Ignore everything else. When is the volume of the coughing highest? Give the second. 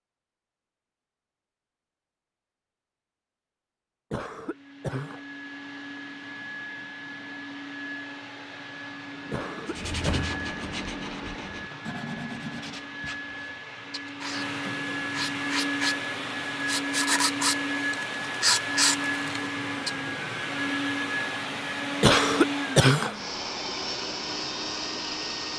23 s.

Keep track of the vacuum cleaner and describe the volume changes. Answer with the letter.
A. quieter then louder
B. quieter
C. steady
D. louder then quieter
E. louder
E.